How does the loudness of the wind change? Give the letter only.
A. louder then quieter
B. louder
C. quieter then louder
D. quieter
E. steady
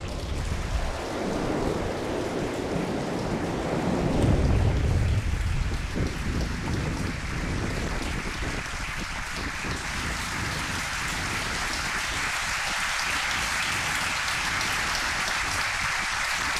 D.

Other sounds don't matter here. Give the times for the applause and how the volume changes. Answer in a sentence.
The applause can be heard from 0.0 to 16.5 s, getting louder.